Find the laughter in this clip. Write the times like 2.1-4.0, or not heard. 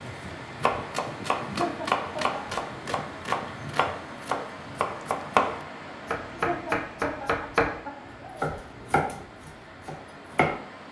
1.6-2.4, 6.5-8.5.